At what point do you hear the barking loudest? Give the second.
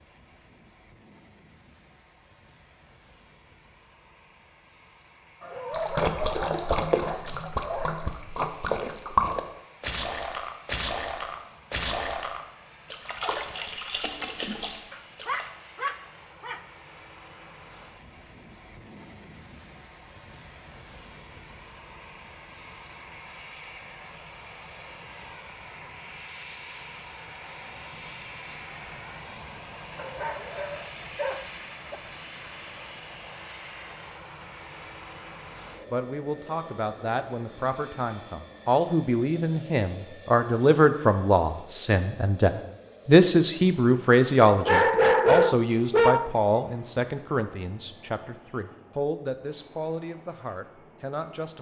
45 s.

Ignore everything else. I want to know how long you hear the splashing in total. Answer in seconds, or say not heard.
10 s.